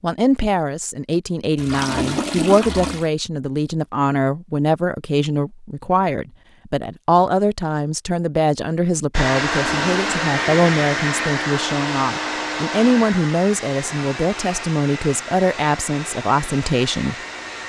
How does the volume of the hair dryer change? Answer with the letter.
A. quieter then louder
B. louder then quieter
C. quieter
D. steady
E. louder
C.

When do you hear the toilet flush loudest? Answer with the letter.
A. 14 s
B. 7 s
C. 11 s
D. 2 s
D.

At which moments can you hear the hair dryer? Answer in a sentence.
You can hear the hair dryer from 9.1 to 17.6 s.